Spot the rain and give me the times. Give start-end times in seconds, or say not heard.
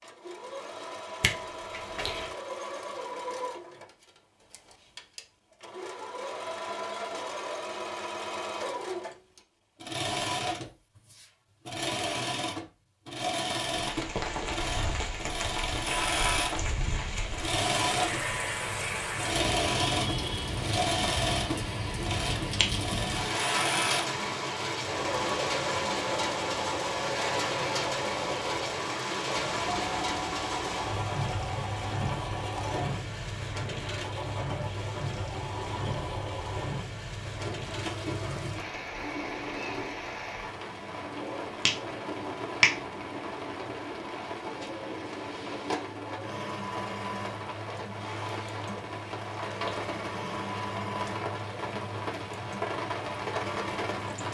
13.7-54.2.